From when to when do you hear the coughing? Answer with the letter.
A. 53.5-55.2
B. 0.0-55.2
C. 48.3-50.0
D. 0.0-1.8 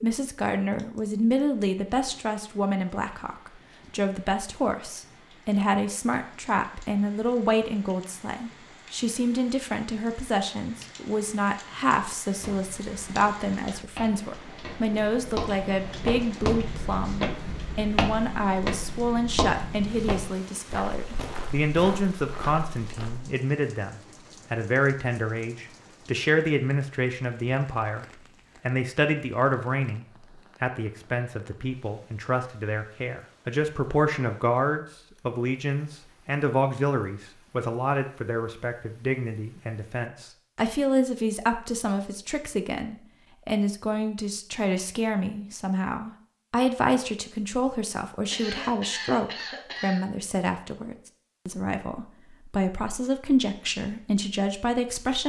C.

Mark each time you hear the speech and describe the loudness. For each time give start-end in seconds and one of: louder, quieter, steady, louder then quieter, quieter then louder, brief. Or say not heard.
0.0-55.2 steady.